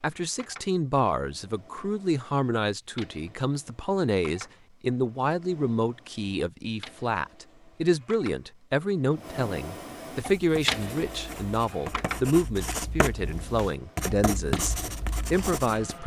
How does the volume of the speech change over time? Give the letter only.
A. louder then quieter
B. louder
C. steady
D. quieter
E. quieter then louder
C.